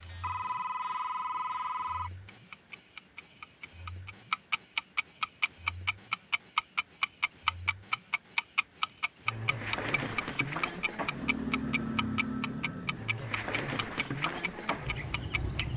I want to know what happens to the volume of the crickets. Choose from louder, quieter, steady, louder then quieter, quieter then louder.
steady.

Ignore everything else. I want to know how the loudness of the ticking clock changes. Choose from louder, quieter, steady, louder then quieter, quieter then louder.
louder then quieter.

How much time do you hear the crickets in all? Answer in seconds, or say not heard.
16 s.